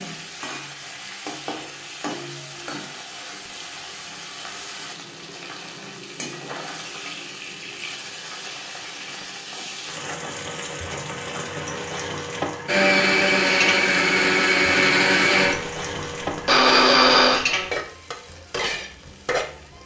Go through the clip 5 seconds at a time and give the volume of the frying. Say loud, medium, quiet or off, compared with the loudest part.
medium, medium, loud, loud.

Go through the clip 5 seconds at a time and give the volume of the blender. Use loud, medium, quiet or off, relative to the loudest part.
off, off, loud, loud.